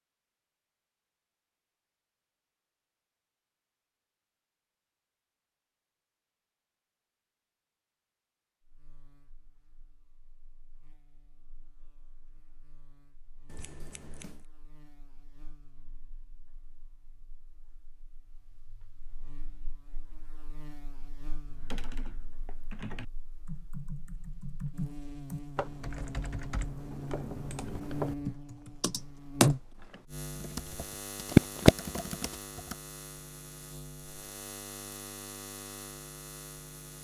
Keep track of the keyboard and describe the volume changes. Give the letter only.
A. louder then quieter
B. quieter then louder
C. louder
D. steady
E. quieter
C.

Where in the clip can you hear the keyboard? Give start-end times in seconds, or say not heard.
21.4-32.8.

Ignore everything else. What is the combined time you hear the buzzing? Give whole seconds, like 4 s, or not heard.
28 s.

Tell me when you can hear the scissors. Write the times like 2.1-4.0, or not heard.
13.4-14.4.